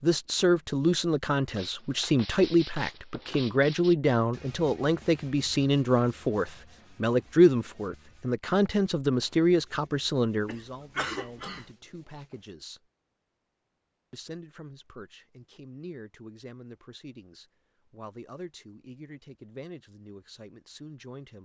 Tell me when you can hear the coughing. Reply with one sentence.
You can hear the coughing from 10.4 to 11.8 s.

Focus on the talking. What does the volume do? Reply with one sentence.
The volume of the talking goes down.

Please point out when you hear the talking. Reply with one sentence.
The talking can be heard from 0.0 to 12.8 s and from 14.1 to 21.4 s.